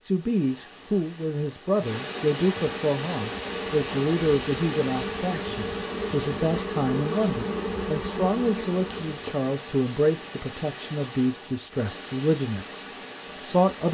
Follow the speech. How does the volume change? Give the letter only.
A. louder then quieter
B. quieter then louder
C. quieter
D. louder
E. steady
E.